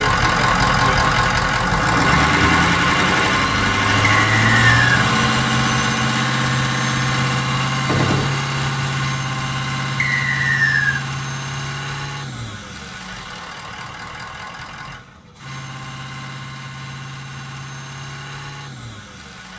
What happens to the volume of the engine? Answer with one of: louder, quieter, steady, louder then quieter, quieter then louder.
quieter.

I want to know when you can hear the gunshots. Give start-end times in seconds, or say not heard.
7.8-8.4.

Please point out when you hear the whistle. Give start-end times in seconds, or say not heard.
4.0-4.8, 9.9-11.0.